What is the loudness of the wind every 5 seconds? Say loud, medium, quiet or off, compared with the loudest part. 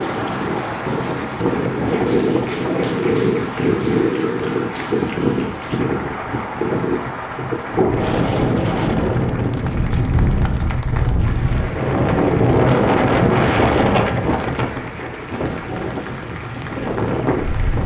loud, loud, loud, medium.